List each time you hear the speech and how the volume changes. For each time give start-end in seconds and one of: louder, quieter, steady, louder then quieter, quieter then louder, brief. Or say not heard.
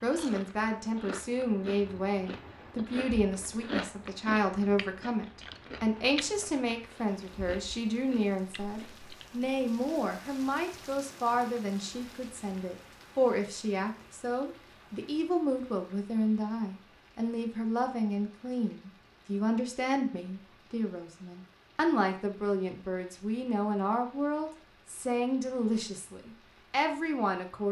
0.0-27.6 steady.